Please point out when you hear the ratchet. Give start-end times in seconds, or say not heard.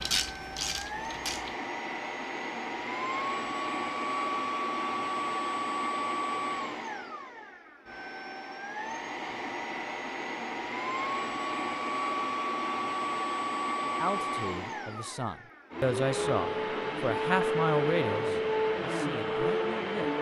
0.0-1.6.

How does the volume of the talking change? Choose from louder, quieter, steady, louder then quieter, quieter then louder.
louder then quieter.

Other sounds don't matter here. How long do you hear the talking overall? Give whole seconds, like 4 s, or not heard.
6 s.